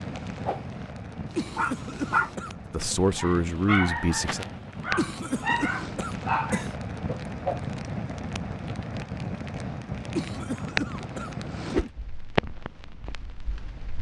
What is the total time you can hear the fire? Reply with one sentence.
The fire can be heard for 14 seconds in total.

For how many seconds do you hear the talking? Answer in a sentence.
You can hear the talking for 2 seconds altogether.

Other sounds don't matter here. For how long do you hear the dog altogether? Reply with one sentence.
The dog can be heard for 5 seconds in total.